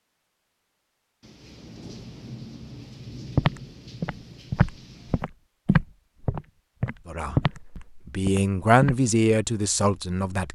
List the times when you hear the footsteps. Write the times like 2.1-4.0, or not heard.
3.4-9.0.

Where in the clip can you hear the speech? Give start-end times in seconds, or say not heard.
7.0-10.4.